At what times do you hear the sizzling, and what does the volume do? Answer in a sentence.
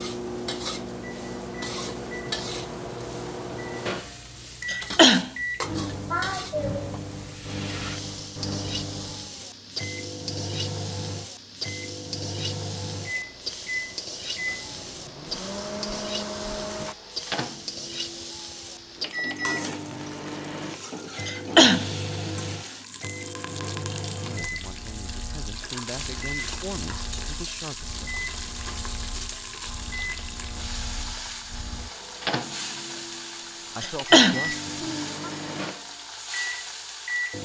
The sizzling can be heard from 0.0 to 37.3 s, at a steady volume.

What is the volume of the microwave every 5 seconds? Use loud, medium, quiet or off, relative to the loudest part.
loud, loud, loud, loud, loud, medium, loud, loud.